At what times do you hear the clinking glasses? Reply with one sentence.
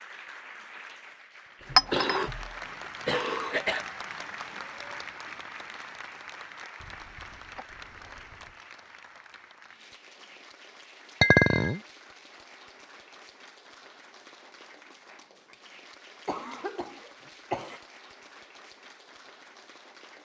The clinking glasses can be heard from 1.8 to 2.2 s and from 11.2 to 11.8 s.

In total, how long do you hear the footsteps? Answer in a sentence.
You can't hear the footsteps here.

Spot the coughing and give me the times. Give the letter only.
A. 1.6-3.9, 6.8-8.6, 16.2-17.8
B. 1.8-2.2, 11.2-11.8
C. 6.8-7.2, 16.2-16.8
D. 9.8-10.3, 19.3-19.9
A.